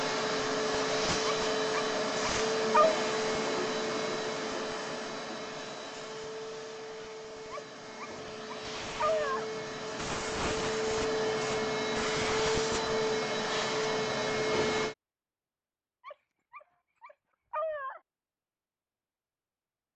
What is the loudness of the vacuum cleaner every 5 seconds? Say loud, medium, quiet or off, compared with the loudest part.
loud, medium, loud, off.